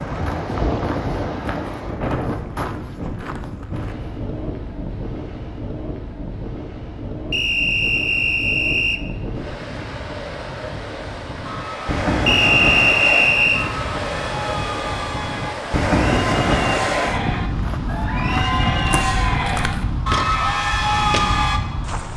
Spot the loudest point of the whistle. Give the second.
13 s.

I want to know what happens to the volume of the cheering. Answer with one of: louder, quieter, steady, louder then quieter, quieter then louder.
louder.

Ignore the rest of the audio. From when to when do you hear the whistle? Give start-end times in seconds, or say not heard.
7.3-9.0, 12.2-13.7.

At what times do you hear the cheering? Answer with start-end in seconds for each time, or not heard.
11.4-21.6.